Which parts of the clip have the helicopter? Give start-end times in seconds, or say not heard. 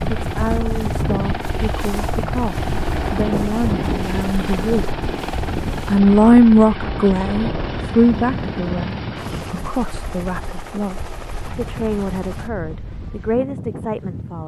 0.0-12.5.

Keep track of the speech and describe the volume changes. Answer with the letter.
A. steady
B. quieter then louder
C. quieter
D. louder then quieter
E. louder
D.